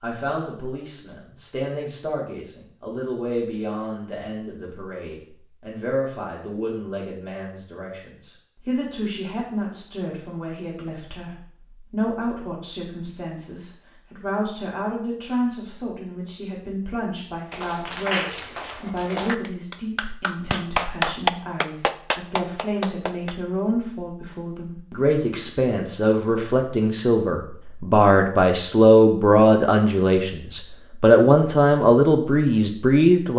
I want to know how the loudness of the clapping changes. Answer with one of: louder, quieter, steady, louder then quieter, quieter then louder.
louder then quieter.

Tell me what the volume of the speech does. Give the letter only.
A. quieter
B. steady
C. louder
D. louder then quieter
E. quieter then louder
C.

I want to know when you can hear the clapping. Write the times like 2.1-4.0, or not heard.
17.5-23.4.